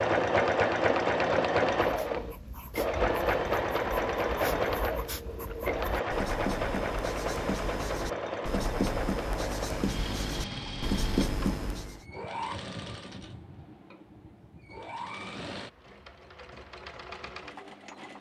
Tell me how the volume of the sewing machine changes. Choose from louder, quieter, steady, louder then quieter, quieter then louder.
quieter.